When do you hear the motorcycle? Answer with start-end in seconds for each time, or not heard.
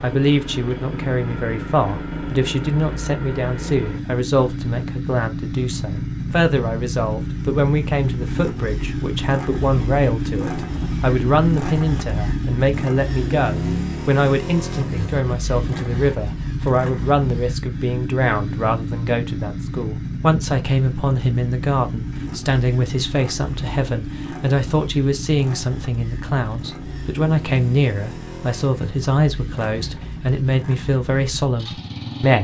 0.0-32.4.